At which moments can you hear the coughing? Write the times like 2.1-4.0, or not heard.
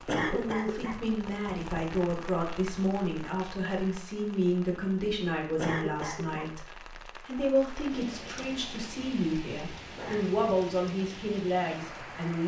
0.1-1.0, 5.5-6.5, 9.9-10.4.